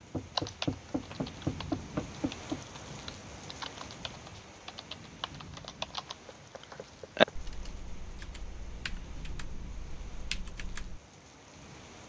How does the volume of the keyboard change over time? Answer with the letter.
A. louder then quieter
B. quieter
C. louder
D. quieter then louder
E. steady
A.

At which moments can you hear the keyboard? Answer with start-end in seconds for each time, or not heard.
0.3-11.0.